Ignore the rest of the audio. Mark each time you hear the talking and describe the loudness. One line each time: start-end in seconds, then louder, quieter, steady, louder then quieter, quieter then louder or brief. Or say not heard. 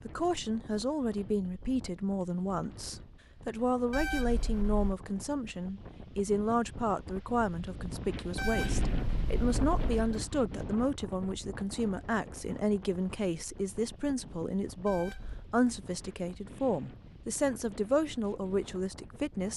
0.1-19.5 steady.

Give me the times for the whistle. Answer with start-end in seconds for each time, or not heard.
not heard.